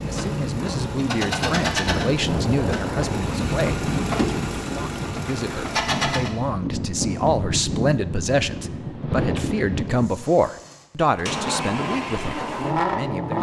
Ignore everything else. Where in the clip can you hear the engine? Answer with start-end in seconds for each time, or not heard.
0.0-6.3, 9.9-13.3.